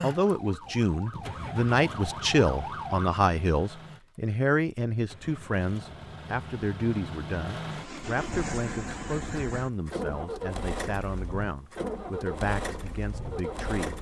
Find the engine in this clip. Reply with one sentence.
You can hear the engine from 0.0 to 13.9 s.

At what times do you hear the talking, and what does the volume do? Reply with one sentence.
You can hear the talking from 0.0 to 13.9 s, getting quieter.